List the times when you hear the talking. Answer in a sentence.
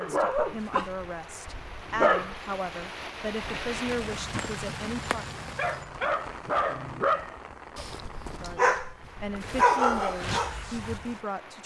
The talking can be heard from 0.0 to 5.4 s and from 8.4 to 11.6 s.